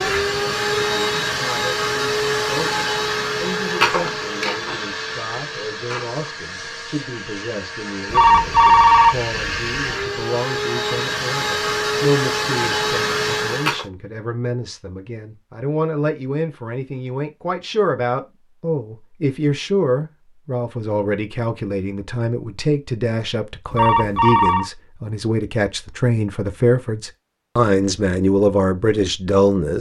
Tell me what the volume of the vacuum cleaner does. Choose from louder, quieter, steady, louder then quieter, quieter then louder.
quieter then louder.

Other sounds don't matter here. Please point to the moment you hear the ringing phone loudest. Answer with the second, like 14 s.
9 s.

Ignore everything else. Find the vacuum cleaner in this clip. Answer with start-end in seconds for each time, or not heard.
0.0-13.8.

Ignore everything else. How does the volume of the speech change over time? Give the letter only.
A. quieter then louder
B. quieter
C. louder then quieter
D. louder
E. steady
D.